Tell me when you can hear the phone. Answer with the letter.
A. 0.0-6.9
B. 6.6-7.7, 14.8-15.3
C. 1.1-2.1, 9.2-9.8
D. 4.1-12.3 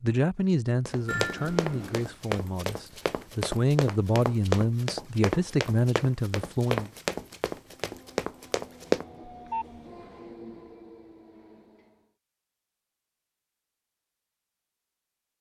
C.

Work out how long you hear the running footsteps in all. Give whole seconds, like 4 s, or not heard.
8 s.